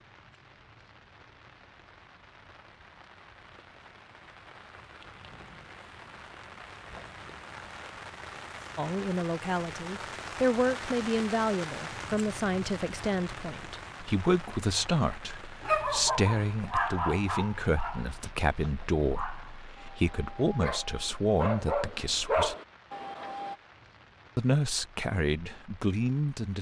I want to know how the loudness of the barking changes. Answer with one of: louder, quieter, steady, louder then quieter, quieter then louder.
quieter then louder.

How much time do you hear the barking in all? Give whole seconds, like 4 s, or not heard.
8 s.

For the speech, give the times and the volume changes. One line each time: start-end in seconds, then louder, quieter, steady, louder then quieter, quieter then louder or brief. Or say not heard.
8.8-22.6 steady
24.4-26.5 brief.